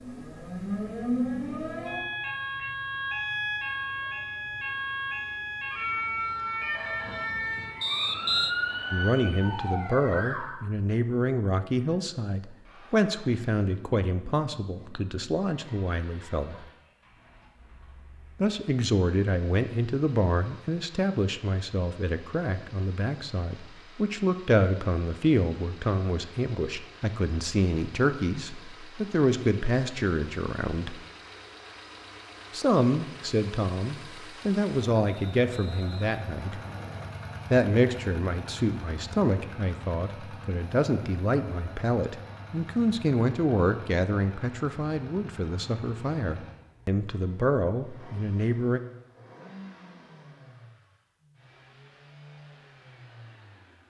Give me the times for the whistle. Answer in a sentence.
You can hear the whistle from 7.8 to 8.6 s and from 35.0 to 37.0 s.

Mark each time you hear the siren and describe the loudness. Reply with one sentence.
You can hear the siren from 0.0 to 10.6 s, at a steady volume.